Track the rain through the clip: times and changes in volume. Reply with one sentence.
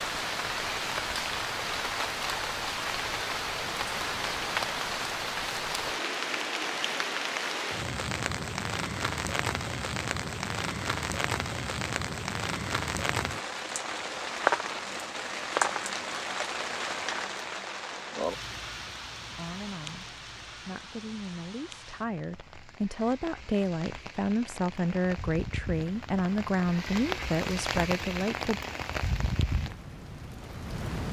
The rain can be heard from 0.0 to 31.0 s, getting quieter then louder.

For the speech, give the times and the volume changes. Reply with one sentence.
You can hear the speech from 19.4 to 28.6 s, getting louder.